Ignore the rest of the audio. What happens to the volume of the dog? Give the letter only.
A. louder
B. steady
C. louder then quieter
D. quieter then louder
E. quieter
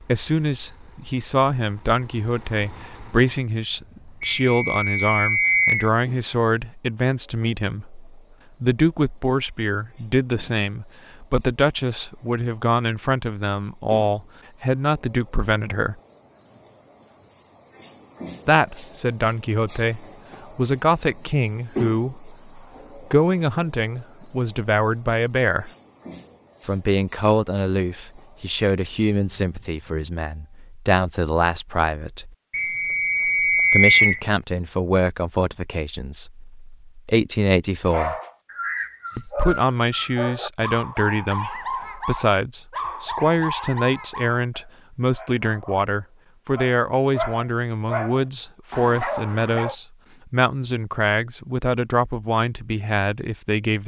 D.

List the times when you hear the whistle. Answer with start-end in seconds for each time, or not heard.
4.2-5.9, 32.5-34.2.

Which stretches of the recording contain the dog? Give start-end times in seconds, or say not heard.
37.9-49.8.